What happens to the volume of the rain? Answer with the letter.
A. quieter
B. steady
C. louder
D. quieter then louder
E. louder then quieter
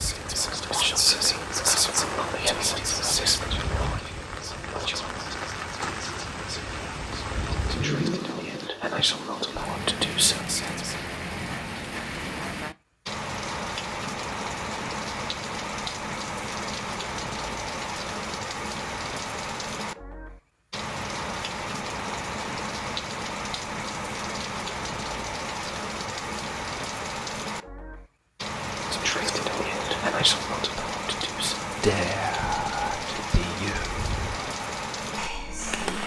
B.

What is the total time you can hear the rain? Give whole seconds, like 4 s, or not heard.
36 s.